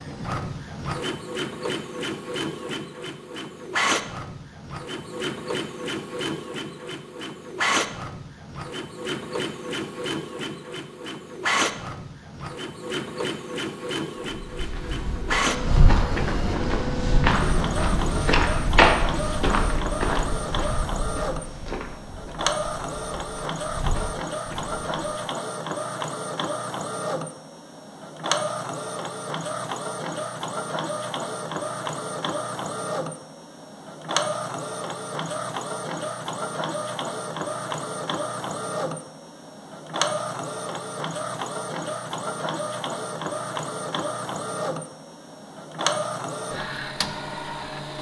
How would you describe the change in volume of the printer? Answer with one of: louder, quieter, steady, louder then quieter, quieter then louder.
steady.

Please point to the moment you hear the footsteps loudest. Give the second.
19 s.